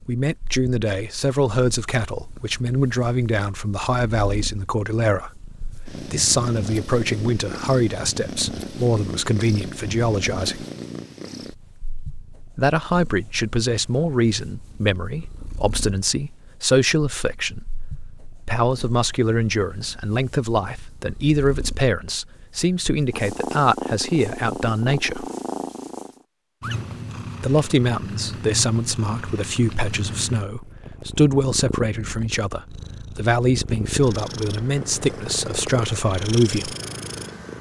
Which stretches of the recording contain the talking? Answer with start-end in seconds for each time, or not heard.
0.1-10.7, 12.6-25.2, 27.4-36.8.